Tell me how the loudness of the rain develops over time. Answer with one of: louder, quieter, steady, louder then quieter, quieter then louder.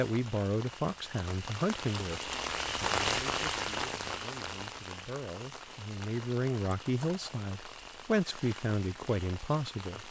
louder then quieter.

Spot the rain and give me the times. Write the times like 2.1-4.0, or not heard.
0.0-10.0.